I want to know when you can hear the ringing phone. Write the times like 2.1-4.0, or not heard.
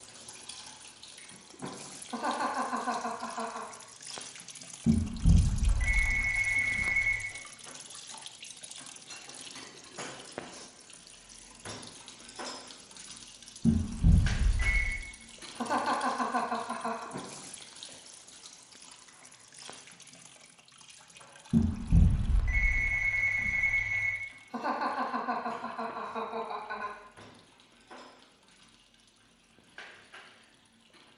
4.8-7.3, 13.7-15.0, 21.5-24.1.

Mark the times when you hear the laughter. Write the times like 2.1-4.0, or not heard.
2.1-3.7, 15.6-17.1, 24.5-26.9.